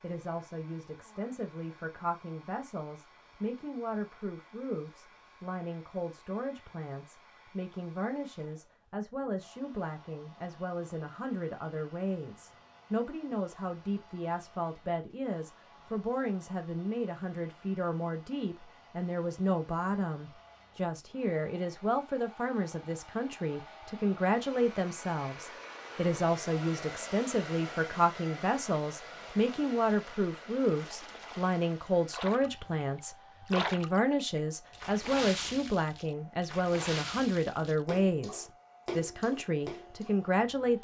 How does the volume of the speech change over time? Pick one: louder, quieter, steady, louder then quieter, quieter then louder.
louder.